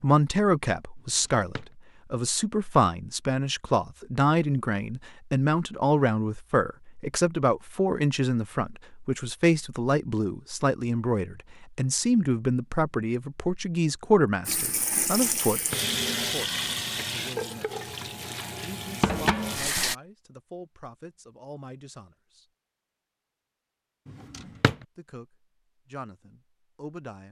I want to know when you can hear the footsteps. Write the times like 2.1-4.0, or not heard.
not heard.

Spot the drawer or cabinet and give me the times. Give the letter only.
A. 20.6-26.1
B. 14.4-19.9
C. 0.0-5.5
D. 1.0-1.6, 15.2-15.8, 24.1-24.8
D.